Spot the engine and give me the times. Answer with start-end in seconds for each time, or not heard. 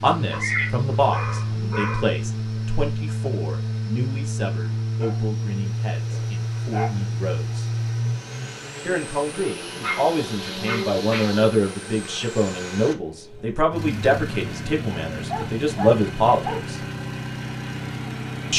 0.0-18.5.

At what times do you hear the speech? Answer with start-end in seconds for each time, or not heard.
0.0-7.7, 8.8-16.8.